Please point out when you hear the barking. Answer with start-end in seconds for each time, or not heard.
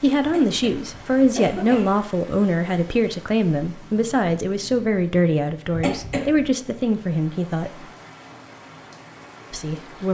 not heard.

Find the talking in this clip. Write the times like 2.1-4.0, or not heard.
0.0-7.8, 9.5-10.1.